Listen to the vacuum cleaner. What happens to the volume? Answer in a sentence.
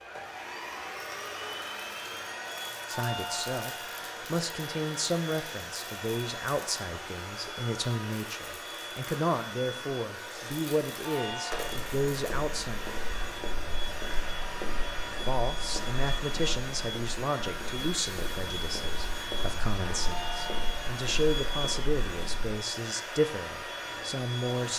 The loudness of the vacuum cleaner stays about the same.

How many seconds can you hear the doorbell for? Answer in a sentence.
You can hear the doorbell for 3 seconds altogether.